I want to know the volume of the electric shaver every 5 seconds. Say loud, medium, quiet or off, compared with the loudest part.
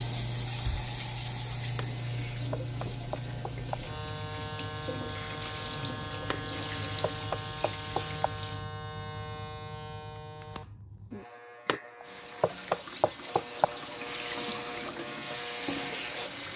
loud, loud, medium, loud.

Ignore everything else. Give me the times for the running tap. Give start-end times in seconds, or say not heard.
0.0-8.7, 12.0-16.5.